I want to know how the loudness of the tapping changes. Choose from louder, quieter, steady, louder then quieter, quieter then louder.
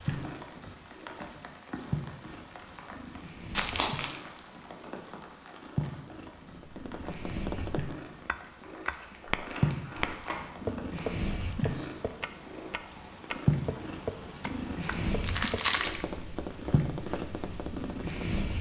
louder then quieter.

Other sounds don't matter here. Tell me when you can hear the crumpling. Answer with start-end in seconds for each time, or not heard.
3.5-4.2, 8.8-10.4, 14.8-16.1.